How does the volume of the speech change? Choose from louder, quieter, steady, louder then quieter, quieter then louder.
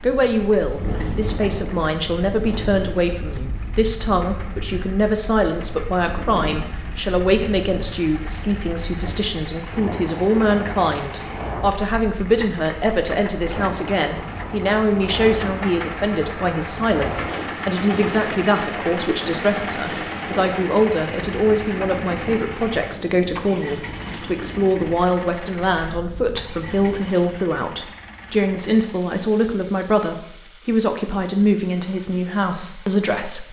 steady.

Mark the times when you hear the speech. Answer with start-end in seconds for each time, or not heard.
0.0-33.4.